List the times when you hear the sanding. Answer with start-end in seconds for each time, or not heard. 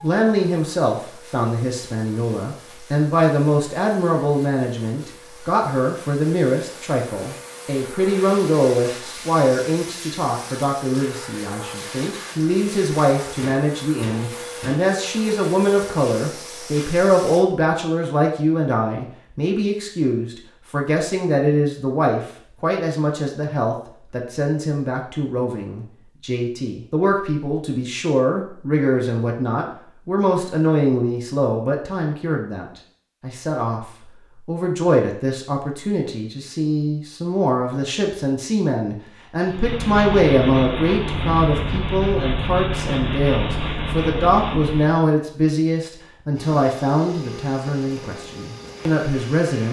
39.5-45.0.